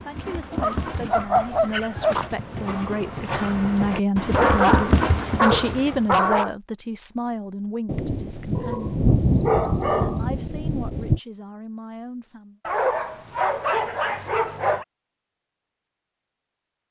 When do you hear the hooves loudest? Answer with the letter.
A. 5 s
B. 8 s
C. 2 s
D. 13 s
A.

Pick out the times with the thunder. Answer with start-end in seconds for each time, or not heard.
7.8-11.2.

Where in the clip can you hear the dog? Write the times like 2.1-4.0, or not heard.
0.6-2.3, 4.3-6.5, 8.6-10.2, 12.7-14.8.